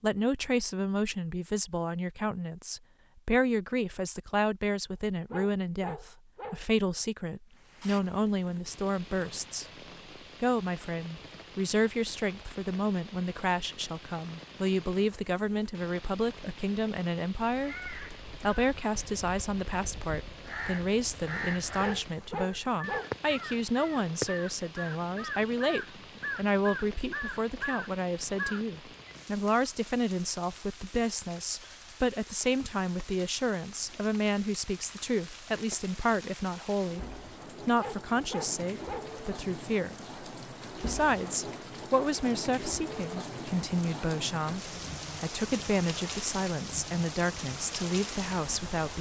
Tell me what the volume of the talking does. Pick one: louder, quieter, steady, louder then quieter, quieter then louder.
steady.